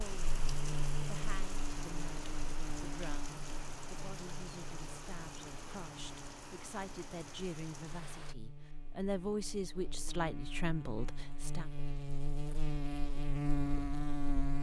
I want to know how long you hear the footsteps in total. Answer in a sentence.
The footsteps can't be heard in this clip.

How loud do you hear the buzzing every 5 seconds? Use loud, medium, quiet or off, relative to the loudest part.
medium, quiet, loud.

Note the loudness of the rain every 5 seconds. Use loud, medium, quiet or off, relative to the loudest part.
loud, loud, off.